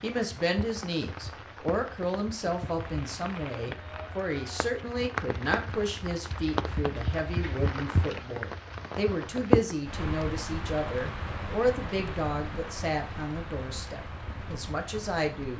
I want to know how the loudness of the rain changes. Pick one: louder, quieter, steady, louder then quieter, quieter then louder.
louder then quieter.